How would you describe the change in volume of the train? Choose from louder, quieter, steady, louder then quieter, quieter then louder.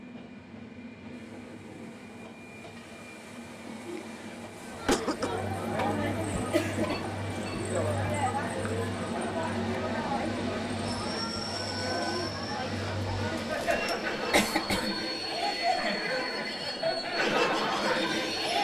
louder.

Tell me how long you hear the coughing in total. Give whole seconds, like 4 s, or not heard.
3 s.